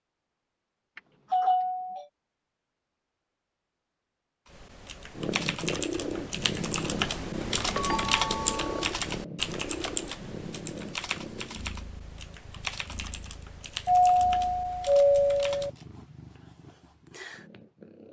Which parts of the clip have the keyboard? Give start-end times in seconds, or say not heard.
4.5-15.7.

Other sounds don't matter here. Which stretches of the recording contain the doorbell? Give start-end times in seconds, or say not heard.
0.9-2.0, 7.2-8.9, 13.8-15.7.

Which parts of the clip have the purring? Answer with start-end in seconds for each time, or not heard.
5.2-18.0.